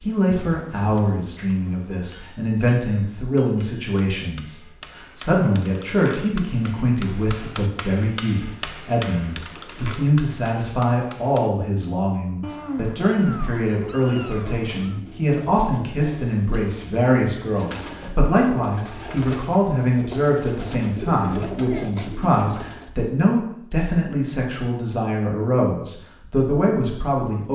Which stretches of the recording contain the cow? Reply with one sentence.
The cow can't be heard in this clip.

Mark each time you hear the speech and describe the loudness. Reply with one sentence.
You can hear the speech from 0.0 to 27.5 s, at a steady volume.